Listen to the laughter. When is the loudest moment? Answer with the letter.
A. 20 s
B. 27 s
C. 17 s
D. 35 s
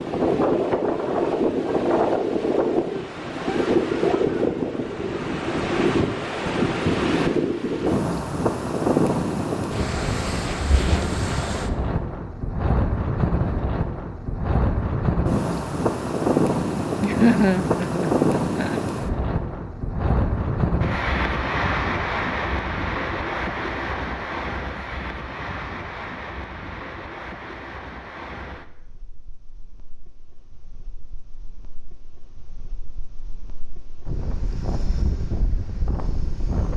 C.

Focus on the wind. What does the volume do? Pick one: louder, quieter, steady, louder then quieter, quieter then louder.
quieter.